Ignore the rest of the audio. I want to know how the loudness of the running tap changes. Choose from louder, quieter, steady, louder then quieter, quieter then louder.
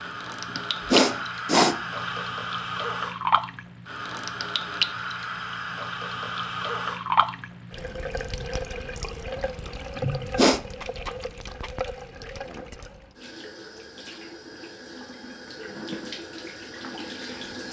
quieter.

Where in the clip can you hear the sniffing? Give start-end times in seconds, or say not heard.
0.6-1.8, 9.9-10.7.